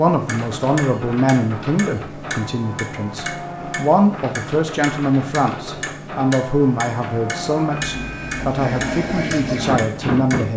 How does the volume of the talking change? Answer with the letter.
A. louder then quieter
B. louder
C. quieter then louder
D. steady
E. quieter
D.